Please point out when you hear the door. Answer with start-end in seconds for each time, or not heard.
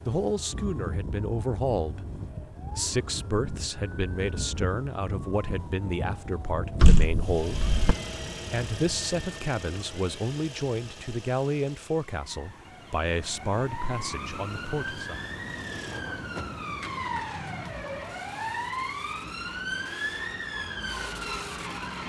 6.8-8.0.